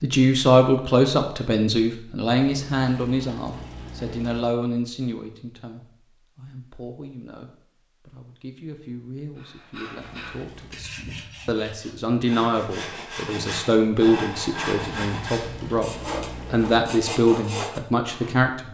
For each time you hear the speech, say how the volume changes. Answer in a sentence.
You can hear the speech from 0.0 to 15.9 s, getting quieter then louder; and briefly from 16.5 to 18.6 s.